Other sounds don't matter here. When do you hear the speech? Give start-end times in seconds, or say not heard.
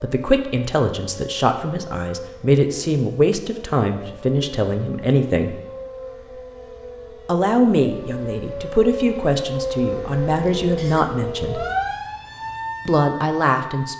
0.0-5.5, 7.2-11.6, 12.8-13.9.